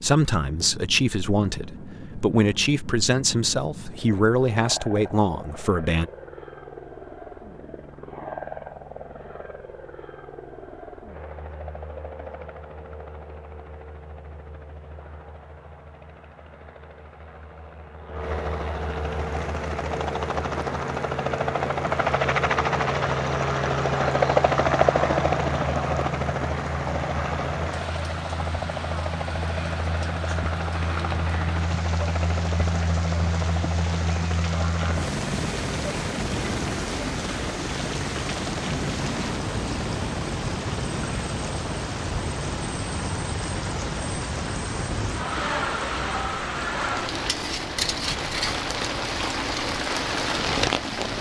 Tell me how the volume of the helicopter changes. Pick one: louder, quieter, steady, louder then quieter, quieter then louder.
louder then quieter.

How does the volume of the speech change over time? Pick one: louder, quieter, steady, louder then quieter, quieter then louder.
steady.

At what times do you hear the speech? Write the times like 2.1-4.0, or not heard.
0.0-6.1.